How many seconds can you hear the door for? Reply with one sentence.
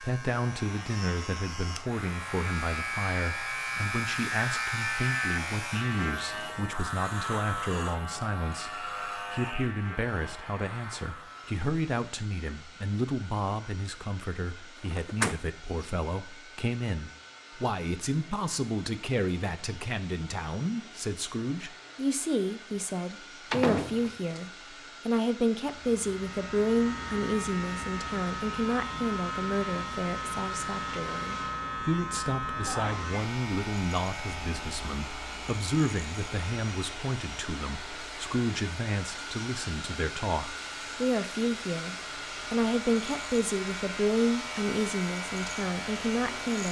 You can hear the door for 2 seconds altogether.